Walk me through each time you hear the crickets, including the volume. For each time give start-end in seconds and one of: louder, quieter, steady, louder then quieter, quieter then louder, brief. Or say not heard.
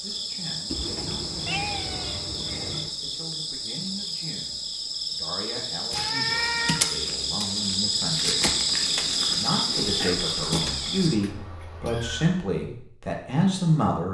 0.0-11.2 louder.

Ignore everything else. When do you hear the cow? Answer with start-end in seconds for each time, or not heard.
not heard.